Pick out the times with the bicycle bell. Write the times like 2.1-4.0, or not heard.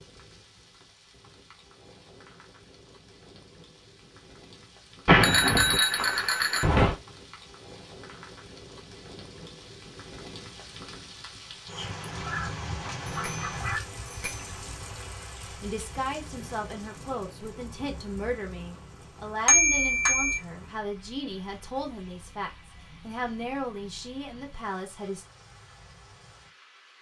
5.0-7.0, 13.1-14.8, 19.4-20.4.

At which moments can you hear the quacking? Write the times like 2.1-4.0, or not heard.
12.0-13.8.